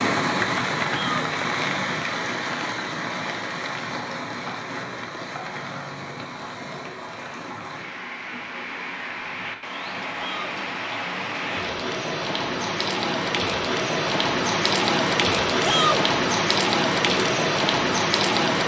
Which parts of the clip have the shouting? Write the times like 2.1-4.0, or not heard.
0.8-1.2, 10.2-10.6, 15.6-16.0.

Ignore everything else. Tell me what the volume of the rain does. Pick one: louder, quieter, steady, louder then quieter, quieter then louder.
quieter then louder.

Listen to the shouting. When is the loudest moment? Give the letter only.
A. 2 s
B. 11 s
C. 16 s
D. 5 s
C.